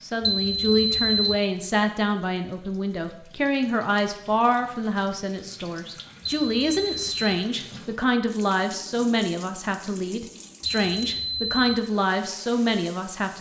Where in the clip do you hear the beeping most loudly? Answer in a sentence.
The loudest moment of the beeping is at 1 second.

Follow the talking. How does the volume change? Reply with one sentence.
The loudness of the talking stays about the same.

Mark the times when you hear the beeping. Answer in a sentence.
The beeping can be heard from 0.2 to 1.4 s, from 6.2 to 7.3 s and from 10.7 to 11.8 s.